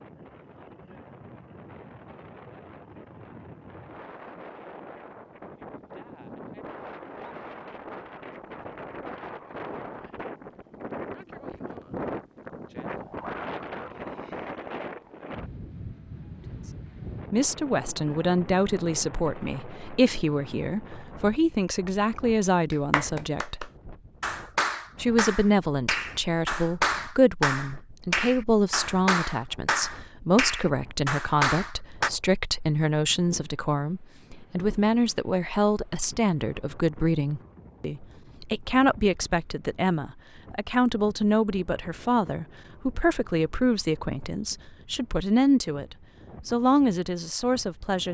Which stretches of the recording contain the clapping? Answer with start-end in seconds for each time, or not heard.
22.7-32.1.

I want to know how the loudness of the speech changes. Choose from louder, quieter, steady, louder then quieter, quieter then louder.
steady.